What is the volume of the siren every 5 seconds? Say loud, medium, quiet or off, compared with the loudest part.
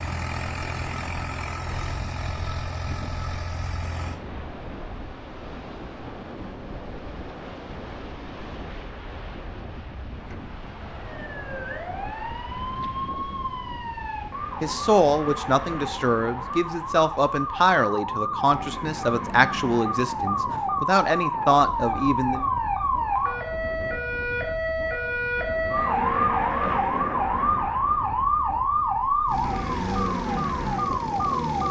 off, off, medium, medium, loud, loud, loud.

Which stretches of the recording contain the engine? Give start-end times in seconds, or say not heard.
0.0-4.2, 29.2-31.6.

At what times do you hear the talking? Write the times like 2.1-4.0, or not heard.
14.6-22.4.